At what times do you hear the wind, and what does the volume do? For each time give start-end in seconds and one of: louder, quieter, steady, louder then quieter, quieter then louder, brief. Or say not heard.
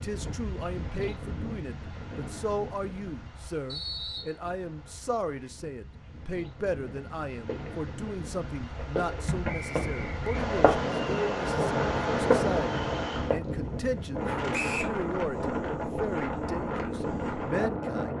0.0-18.1 quieter then louder.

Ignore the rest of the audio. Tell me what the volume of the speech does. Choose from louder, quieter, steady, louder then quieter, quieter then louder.
steady.